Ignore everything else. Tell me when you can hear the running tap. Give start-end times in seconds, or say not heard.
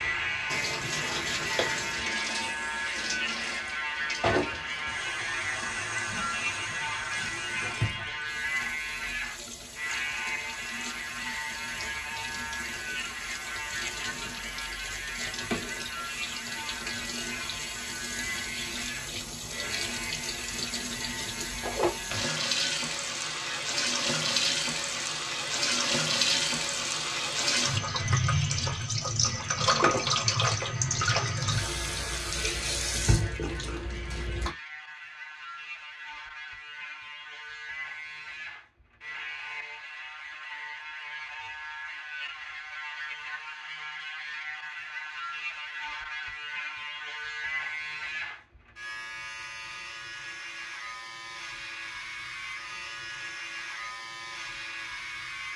0.0-34.5.